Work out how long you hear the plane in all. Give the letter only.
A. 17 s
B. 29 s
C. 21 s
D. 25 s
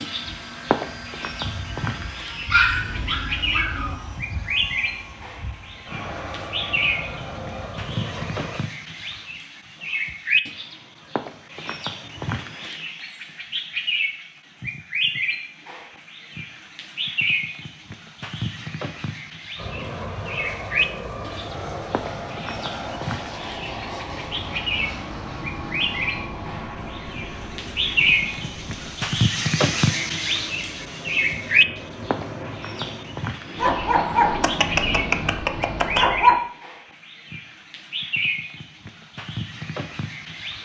D.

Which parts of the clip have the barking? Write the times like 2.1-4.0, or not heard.
2.5-4.0, 33.6-36.4.